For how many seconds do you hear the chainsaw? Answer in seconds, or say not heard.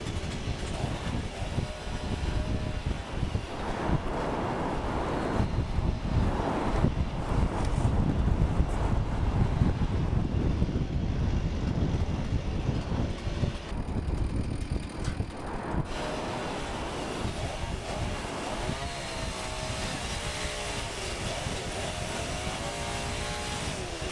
24 s.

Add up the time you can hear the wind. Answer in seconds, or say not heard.
24 s.